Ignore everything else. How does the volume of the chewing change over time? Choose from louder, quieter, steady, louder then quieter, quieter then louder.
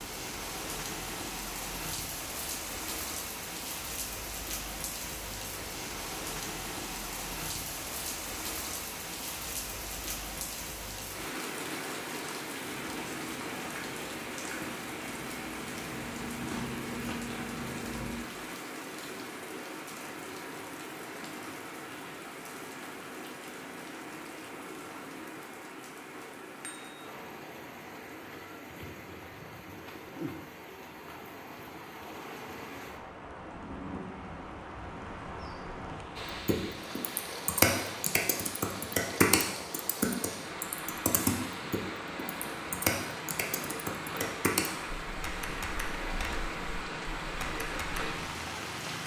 louder.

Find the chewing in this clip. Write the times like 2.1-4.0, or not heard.
12.7-18.2.